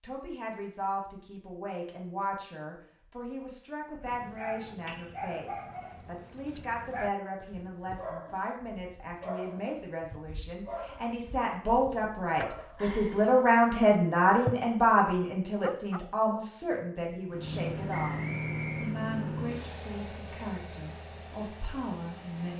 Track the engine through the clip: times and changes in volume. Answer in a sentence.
The engine can be heard from 17.2 to 22.5 s, getting quieter.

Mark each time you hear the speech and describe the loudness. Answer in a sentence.
You can hear the speech from 0.0 to 22.5 s, getting louder then quieter.